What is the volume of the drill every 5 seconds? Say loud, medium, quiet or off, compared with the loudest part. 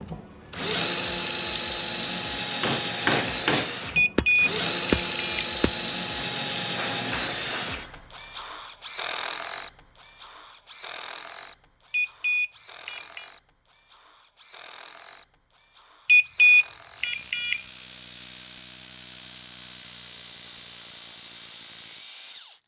loud, loud, quiet, quiet, quiet.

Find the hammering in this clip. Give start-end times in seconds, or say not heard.
2.6-8.1.